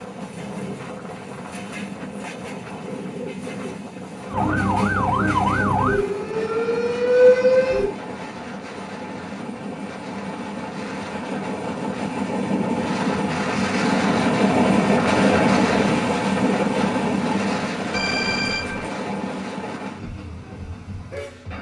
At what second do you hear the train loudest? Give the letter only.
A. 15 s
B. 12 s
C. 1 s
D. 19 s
A.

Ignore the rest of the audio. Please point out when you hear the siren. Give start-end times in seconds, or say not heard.
4.3-8.0.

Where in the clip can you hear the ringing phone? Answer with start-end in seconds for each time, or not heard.
17.9-18.9.